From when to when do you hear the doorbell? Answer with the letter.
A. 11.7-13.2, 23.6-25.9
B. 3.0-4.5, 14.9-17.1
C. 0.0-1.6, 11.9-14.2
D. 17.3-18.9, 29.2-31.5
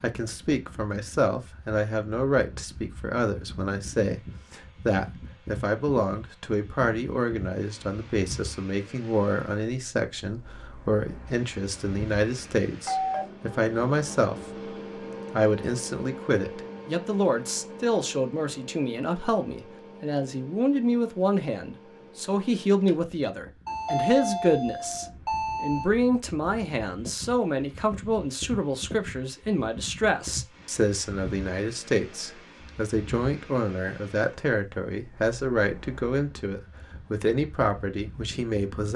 A.